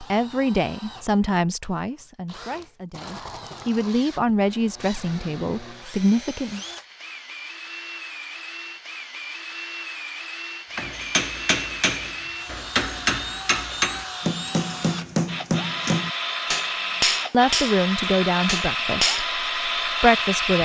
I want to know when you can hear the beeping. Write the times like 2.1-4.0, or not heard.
not heard.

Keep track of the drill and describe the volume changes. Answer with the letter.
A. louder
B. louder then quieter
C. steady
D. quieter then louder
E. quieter
A.